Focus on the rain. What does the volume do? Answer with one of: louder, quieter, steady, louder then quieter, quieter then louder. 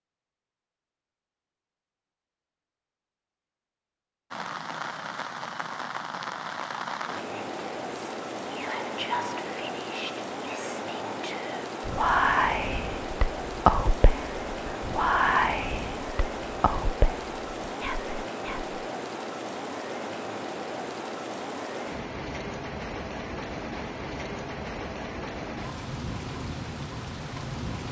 steady.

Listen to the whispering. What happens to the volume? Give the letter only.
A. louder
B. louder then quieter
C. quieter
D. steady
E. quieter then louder
B.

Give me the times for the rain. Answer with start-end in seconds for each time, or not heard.
4.3-27.8.